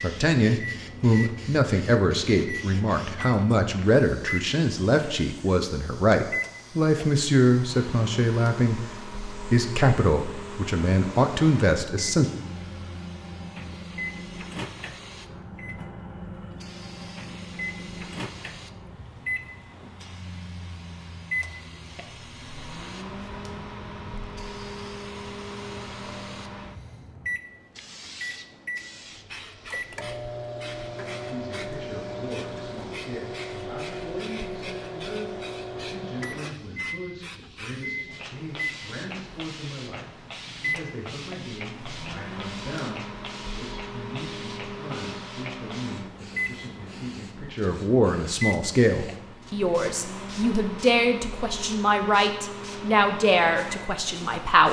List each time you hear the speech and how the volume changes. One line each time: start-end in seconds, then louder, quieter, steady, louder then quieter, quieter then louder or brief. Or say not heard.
0.0-12.2 steady
31.2-54.6 louder.